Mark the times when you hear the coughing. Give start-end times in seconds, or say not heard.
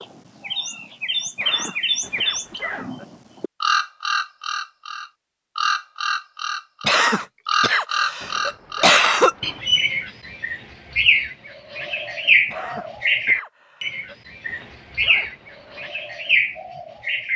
1.4-3.0, 6.8-9.3, 12.4-14.2.